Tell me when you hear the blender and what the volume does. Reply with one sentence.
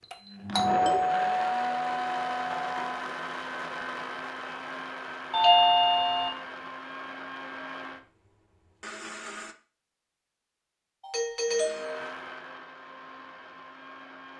The blender can be heard from 0.0 to 9.6 s, getting quieter; and briefly from 11.4 to 14.3 s.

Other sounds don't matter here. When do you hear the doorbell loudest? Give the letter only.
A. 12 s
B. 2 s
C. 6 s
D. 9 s
C.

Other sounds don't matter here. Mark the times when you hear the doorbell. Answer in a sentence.
You can hear the doorbell from 0.5 to 3.0 s, from 5.3 to 6.3 s and from 11.0 to 12.2 s.